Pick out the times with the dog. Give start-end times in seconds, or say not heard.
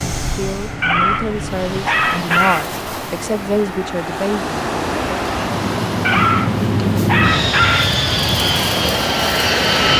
0.8-2.6, 6.0-8.0.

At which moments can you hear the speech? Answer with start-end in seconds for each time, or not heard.
0.2-4.6.